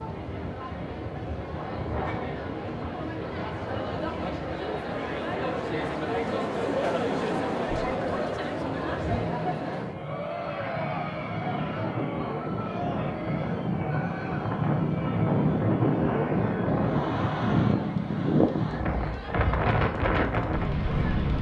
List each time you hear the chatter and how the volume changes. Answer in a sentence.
You can hear the chatter from 0.0 to 21.3 s, getting louder then quieter.